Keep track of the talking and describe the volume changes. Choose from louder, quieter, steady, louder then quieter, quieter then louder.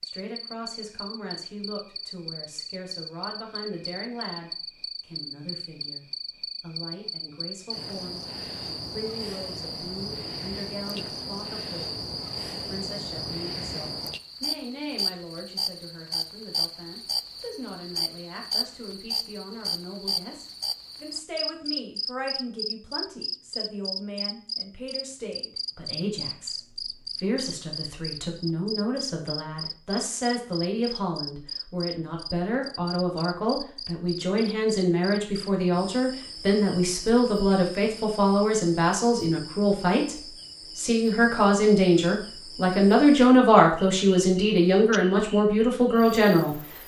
louder.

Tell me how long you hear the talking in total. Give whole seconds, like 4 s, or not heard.
46 s.